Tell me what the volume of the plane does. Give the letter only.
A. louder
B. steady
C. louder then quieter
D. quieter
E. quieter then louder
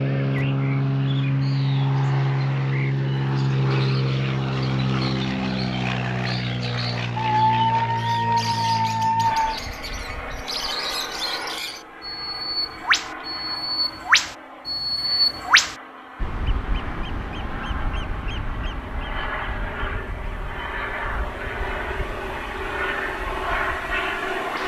E.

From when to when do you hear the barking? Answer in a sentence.
You can hear the barking from 7.2 to 9.4 s.